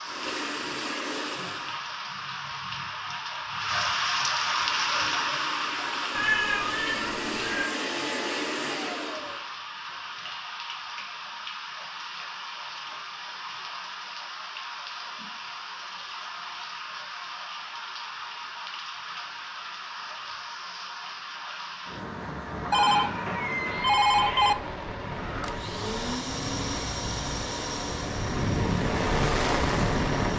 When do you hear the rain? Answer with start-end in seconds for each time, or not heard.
0.0-30.3.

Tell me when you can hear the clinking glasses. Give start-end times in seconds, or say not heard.
not heard.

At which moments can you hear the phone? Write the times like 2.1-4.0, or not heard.
22.7-24.6.